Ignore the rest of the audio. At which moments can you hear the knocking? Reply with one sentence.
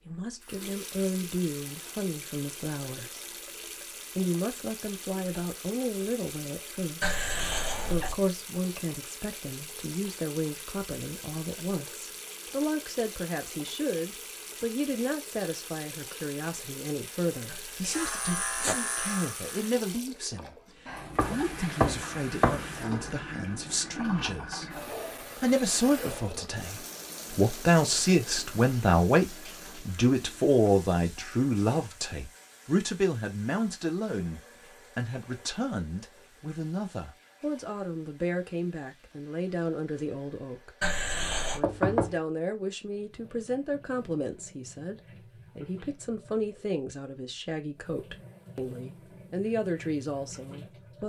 The knocking can be heard from 21.1 to 22.7 s and from 41.6 to 42.1 s.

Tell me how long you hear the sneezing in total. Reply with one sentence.
You can hear the sneezing for 3 seconds altogether.